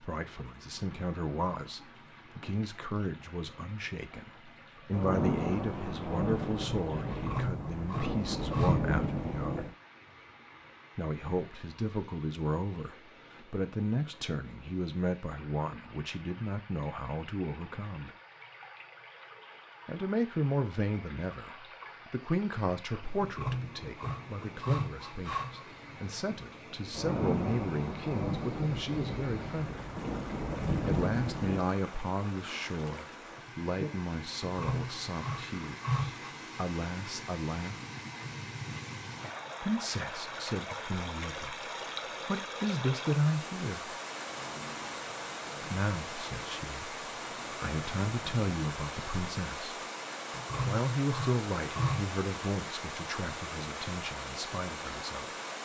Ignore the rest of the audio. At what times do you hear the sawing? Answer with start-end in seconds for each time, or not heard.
7.1-8.8, 23.2-25.6, 34.4-36.3, 50.3-52.1.